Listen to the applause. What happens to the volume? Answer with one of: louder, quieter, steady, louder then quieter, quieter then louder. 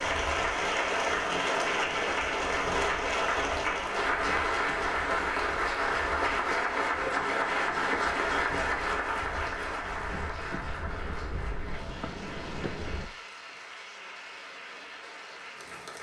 quieter.